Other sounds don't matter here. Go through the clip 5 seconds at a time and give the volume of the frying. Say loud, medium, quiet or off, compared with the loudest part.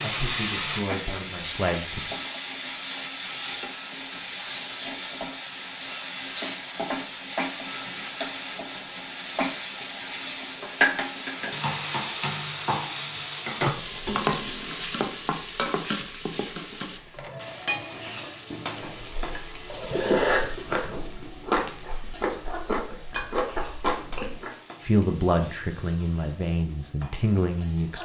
loud, loud, loud, medium, quiet, quiet.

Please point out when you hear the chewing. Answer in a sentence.
The chewing can be heard from 18.8 to 24.5 s.